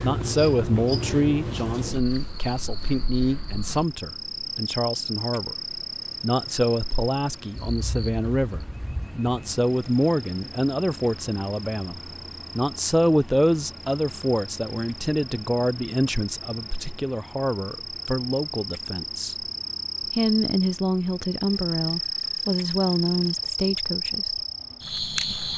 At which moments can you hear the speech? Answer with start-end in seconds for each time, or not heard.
0.0-19.4, 20.1-24.4.